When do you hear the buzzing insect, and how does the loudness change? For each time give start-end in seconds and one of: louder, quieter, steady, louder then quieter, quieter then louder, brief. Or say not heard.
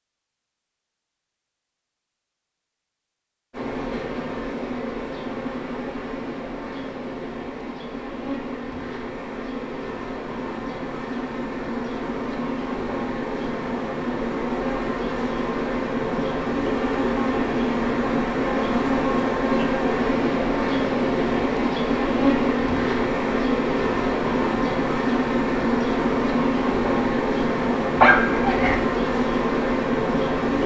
3.5-30.6 louder.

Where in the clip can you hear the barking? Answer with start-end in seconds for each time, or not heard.
27.9-28.8.